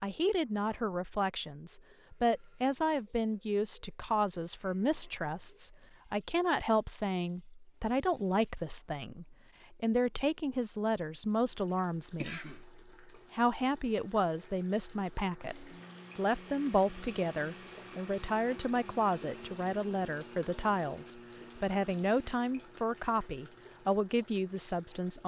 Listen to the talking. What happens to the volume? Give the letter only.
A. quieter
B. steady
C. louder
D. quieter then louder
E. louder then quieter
B.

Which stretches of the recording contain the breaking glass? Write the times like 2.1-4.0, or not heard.
not heard.